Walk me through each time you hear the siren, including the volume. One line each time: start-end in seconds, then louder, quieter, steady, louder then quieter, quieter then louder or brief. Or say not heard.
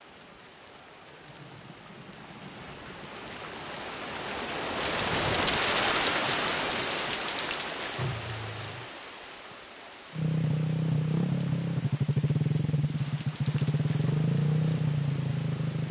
not heard.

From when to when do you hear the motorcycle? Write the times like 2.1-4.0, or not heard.
10.1-15.8.